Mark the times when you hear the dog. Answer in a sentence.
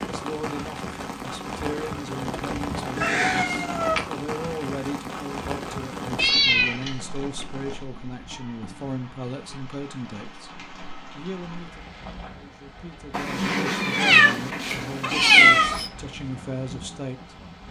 The dog can't be heard in this clip.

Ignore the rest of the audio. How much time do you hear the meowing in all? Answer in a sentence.
You can hear the meowing for 6 seconds altogether.